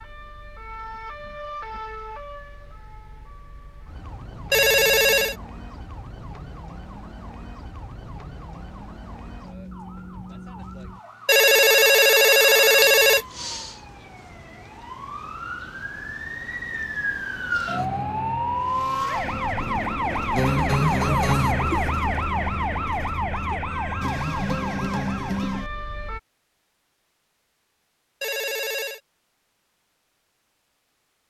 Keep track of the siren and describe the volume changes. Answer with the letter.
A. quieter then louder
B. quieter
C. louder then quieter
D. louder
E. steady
D.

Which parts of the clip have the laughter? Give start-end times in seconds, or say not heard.
not heard.